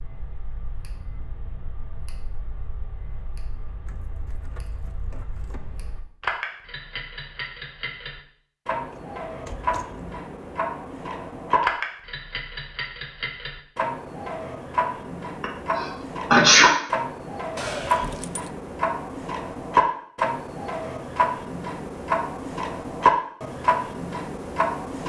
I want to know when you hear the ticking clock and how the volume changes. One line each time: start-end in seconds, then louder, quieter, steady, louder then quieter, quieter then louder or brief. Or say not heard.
0.0-25.0 louder.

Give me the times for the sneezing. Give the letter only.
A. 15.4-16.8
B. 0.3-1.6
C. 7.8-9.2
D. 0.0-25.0
A.